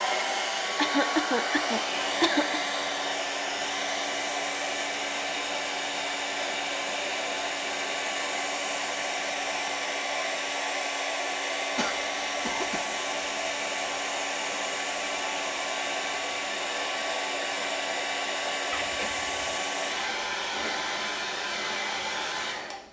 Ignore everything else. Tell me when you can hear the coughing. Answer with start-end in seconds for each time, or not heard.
0.8-2.6, 11.8-12.8, 18.7-19.6.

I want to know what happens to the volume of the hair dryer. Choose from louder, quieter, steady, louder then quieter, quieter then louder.
steady.